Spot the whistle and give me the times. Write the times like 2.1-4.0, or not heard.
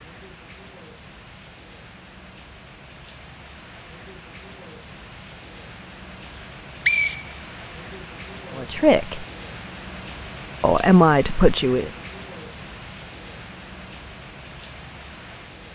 6.3-8.0.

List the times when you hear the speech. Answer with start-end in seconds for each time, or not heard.
8.6-9.2, 10.6-11.9.